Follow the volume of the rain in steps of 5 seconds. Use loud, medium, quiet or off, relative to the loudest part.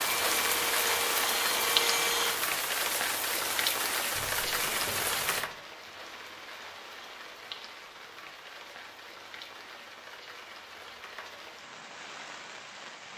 loud, medium, quiet.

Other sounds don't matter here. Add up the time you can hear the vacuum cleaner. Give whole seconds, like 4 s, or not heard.
2 s.